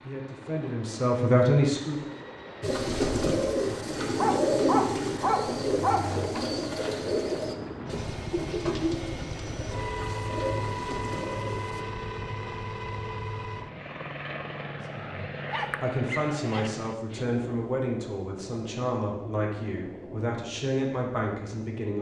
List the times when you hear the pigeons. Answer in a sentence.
You can hear the pigeons from 2.6 to 11.8 s.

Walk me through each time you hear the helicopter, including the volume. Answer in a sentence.
The helicopter can be heard from 0.0 to 21.9 s, getting louder then quieter.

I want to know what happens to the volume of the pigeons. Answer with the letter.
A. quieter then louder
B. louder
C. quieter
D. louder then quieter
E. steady
C.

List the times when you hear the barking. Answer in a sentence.
You can hear the barking from 4.2 to 6.4 s and from 15.5 to 16.7 s.